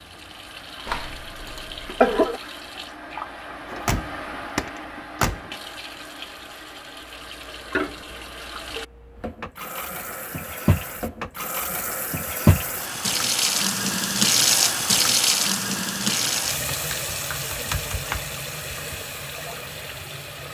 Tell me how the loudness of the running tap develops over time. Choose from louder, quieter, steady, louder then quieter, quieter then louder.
louder then quieter.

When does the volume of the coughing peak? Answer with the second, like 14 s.
2 s.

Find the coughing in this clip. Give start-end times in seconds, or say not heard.
0.8-2.4.